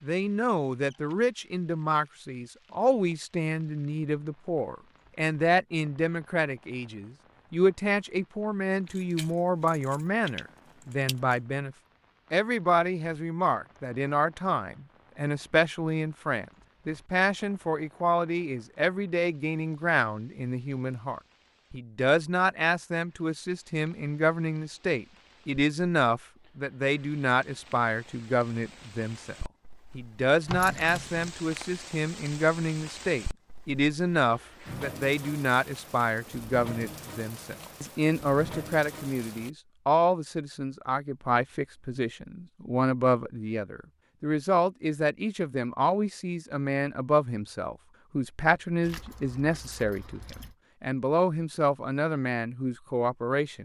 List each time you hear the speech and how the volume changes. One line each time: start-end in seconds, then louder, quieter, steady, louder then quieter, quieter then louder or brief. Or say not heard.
0.0-29.4 steady
29.9-53.6 steady.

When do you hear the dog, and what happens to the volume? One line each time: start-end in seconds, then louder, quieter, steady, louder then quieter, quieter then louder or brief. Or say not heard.
not heard.